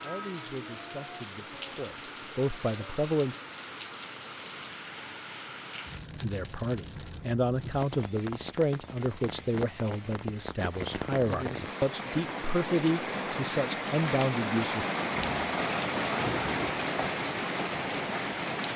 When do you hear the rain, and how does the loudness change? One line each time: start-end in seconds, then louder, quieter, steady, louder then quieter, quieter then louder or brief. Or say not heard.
0.0-18.7 louder.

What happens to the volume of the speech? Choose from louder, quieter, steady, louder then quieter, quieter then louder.
louder.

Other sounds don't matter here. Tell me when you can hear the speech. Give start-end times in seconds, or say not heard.
0.0-3.4, 6.2-14.8.